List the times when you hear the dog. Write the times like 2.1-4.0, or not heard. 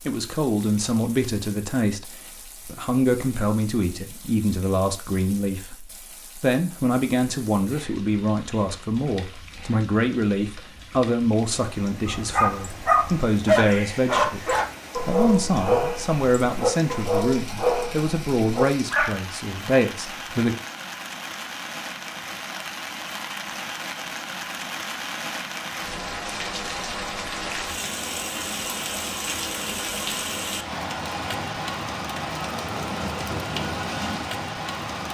12.1-19.2.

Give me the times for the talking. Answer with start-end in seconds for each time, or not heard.
0.1-20.6.